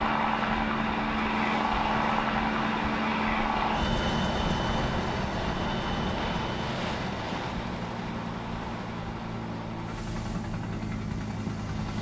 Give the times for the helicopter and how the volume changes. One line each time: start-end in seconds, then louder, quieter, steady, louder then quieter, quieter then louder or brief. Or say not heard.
0.0-11.9 quieter.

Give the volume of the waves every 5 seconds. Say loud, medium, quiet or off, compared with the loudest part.
loud, loud, medium.